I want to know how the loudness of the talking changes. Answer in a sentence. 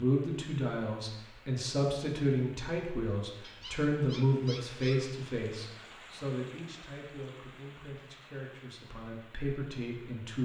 The volume of the talking goes down.